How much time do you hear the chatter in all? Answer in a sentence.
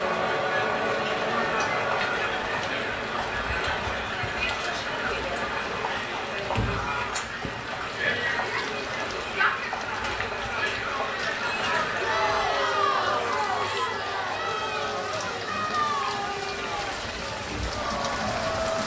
The chatter can be heard for 19 seconds in total.